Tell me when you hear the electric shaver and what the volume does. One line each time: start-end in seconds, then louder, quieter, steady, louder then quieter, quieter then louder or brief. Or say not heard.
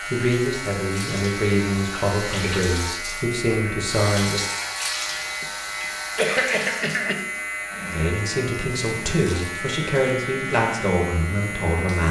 0.0-12.0 steady.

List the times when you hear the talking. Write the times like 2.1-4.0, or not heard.
0.1-4.5, 7.9-12.0.